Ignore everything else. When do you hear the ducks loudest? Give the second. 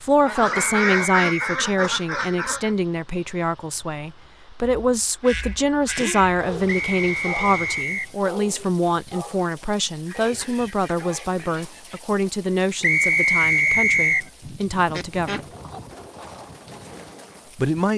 1 s.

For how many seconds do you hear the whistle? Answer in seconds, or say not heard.
4 s.